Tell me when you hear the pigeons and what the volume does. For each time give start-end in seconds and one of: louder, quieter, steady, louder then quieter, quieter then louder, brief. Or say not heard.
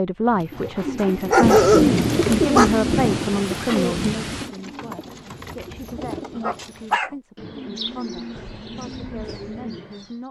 0.3-10.2 quieter.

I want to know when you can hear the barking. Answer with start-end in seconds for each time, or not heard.
1.3-2.7, 6.4-7.1.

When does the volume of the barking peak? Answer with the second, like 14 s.
2 s.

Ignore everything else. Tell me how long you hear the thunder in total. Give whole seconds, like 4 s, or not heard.
3 s.